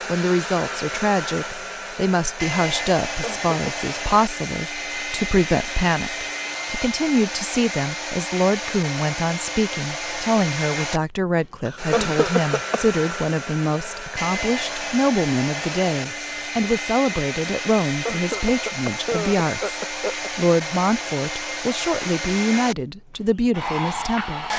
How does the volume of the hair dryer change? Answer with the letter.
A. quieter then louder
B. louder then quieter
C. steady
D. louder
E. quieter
C.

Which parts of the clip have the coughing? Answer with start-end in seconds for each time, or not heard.
3.0-3.6, 11.7-12.8, 17.9-20.3.